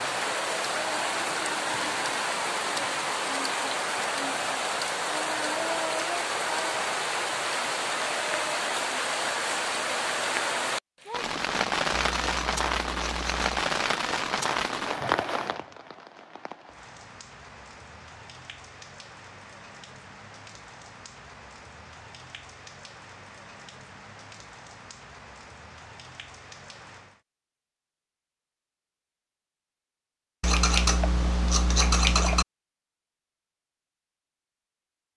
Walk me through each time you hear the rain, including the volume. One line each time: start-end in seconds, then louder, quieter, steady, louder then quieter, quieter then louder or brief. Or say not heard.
0.0-27.2 quieter.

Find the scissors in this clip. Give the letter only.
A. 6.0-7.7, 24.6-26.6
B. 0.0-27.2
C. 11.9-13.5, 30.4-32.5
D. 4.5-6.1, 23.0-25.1
C.